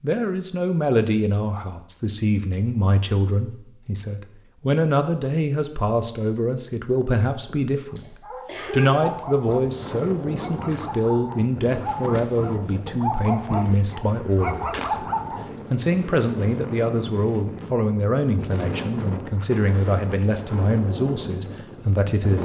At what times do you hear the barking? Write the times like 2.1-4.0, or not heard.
7.8-15.4.